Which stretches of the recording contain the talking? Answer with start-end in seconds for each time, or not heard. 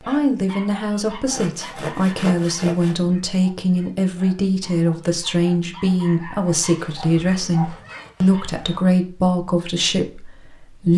0.0-10.9.